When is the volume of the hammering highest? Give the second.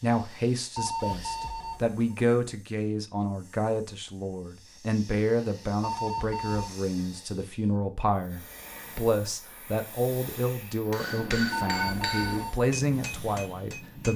11 s.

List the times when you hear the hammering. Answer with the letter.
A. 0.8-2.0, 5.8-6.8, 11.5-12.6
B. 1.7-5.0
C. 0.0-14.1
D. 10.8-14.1
D.